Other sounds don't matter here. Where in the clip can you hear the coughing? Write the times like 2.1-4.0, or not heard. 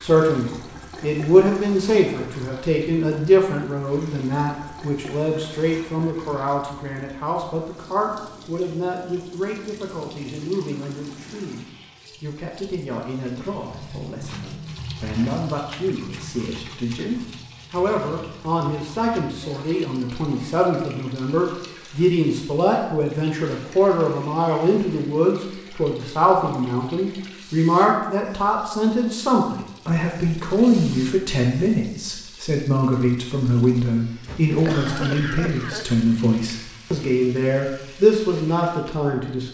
34.2-35.9.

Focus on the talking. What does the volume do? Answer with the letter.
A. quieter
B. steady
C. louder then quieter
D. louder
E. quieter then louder
E.